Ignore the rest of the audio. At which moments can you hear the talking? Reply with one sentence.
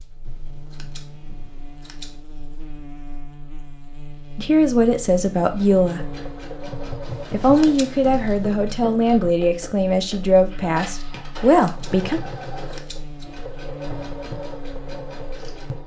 You can hear the talking from 4.3 to 6.1 s and from 7.3 to 12.2 s.